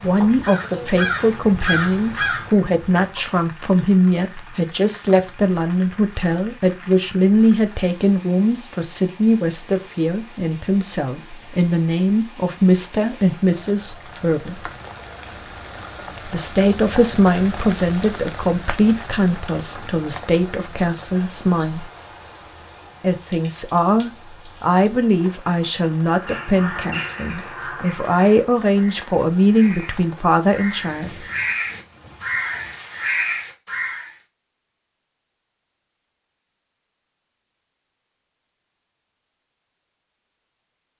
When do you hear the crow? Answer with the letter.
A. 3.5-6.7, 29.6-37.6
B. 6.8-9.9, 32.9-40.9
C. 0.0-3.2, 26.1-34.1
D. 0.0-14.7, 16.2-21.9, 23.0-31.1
C.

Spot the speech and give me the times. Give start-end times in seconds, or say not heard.
0.0-14.7, 16.2-21.9, 23.0-31.1.